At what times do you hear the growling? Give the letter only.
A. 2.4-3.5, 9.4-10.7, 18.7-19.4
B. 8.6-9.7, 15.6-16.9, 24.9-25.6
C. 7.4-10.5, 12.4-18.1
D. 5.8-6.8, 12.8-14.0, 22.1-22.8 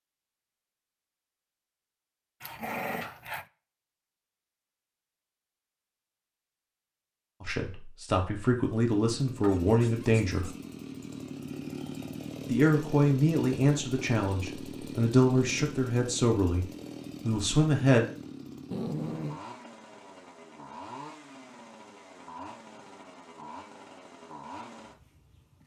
A.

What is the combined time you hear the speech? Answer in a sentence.
You can hear the speech for 9 seconds altogether.